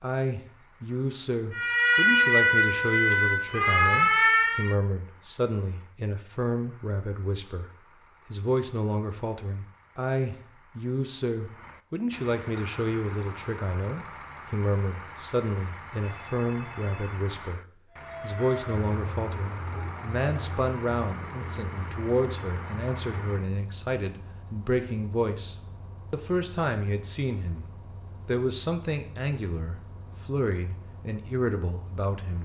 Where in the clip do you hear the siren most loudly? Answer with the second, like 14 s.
2 s.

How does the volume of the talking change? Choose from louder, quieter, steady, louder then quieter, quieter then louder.
steady.